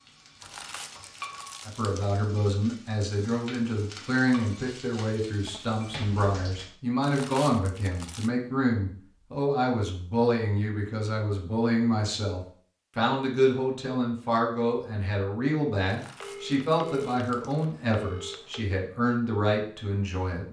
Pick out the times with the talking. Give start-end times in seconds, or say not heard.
1.6-20.4.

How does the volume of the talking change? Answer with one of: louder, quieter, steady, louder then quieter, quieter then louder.
steady.